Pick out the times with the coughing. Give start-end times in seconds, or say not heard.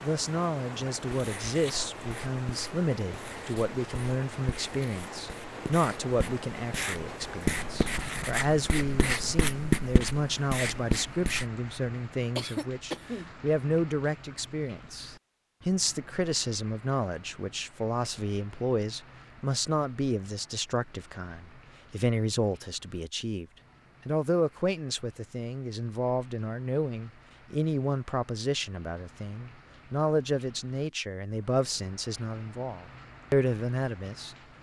12.3-13.3.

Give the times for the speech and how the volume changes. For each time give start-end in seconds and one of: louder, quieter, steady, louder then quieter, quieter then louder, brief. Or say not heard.
0.0-23.4 steady
24.1-34.4 steady.